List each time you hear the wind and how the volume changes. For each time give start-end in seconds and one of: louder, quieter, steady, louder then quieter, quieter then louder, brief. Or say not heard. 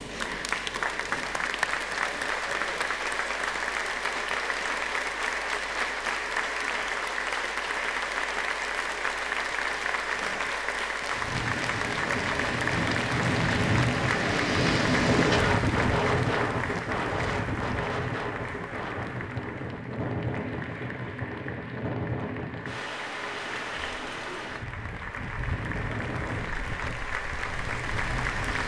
11.1-28.6 quieter.